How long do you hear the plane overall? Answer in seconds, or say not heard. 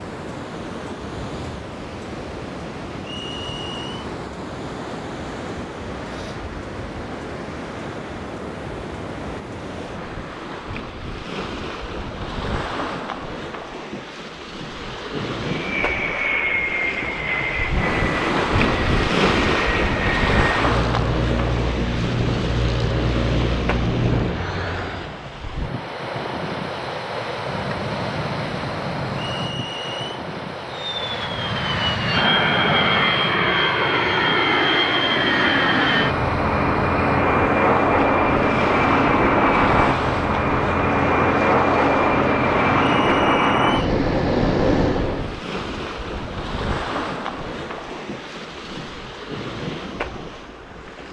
24 s.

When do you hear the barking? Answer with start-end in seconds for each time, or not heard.
not heard.